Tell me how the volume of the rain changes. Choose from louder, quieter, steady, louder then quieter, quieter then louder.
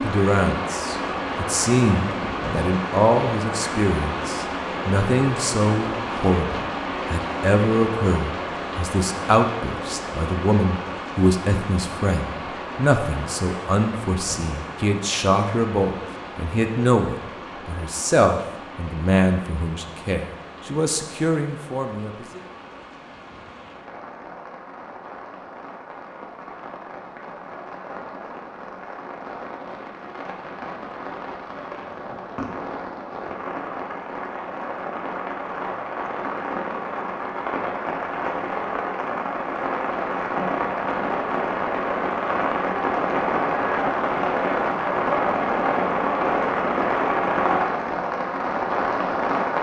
quieter then louder.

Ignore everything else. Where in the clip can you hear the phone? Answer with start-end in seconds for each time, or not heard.
not heard.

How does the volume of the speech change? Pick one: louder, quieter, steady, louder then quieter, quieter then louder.
steady.